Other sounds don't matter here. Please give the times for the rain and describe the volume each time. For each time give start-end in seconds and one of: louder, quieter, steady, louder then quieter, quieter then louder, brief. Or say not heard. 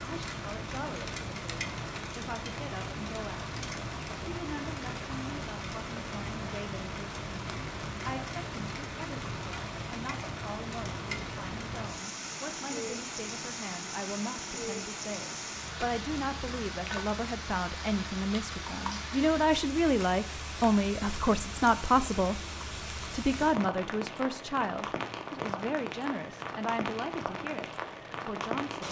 0.0-28.8 steady.